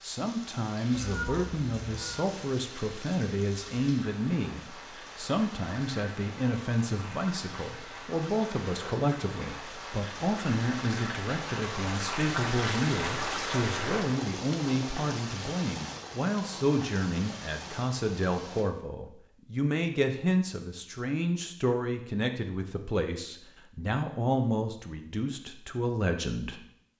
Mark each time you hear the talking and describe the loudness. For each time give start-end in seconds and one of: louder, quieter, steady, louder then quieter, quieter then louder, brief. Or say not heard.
0.0-26.6 steady.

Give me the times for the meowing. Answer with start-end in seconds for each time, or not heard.
0.9-2.2.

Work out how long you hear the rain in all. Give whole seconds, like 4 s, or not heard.
19 s.